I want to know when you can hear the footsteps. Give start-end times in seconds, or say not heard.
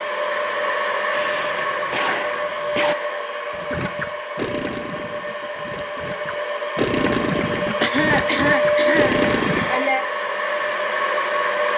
not heard.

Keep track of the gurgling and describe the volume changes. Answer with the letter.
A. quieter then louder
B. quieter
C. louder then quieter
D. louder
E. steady
A.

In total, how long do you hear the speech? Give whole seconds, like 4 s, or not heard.
not heard.